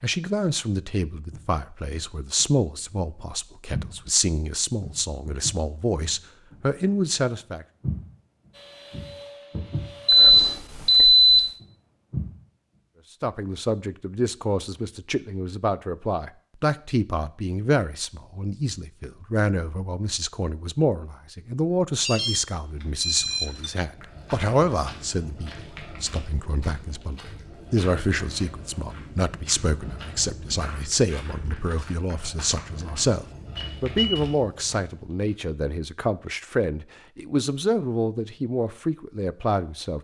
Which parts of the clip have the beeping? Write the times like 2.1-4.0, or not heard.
10.1-11.4, 22.1-23.7, 33.5-34.2.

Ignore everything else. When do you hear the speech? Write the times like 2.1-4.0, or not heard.
0.0-7.7, 13.2-39.9.